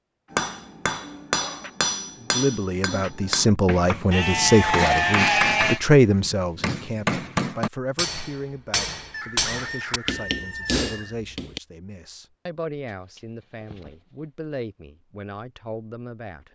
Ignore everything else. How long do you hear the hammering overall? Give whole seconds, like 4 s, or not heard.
11 s.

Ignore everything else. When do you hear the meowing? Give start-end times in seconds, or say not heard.
not heard.